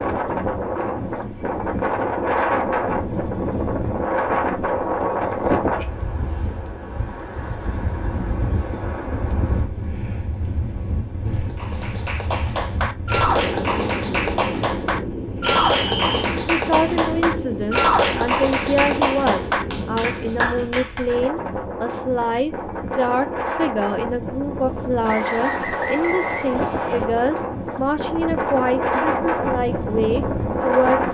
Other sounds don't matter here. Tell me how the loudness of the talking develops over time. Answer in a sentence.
The volume of the talking stays about the same.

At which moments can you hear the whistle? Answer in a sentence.
You can hear the whistle from 4.7 to 5.3 s, from 15.4 to 16.2 s and from 25.1 to 27.1 s.